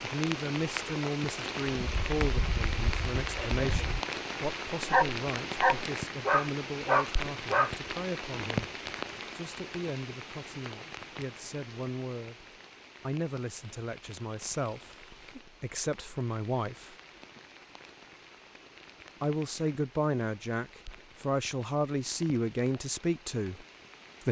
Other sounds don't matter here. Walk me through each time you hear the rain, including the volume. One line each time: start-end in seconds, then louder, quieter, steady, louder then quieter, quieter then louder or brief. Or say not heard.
0.0-24.2 quieter.